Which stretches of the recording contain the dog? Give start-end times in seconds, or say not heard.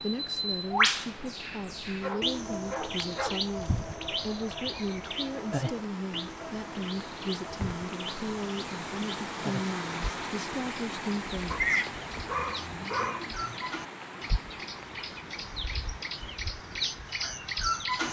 2.0-3.8, 11.5-13.6.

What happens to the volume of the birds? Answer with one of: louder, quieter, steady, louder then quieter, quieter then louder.
quieter then louder.